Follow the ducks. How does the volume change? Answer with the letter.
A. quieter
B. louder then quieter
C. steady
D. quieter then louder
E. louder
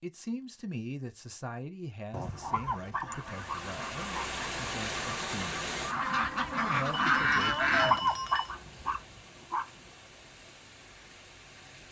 E.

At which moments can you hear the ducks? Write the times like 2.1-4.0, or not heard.
3.0-8.0.